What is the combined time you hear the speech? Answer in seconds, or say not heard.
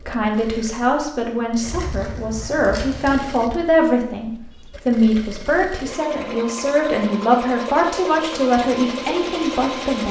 10 s.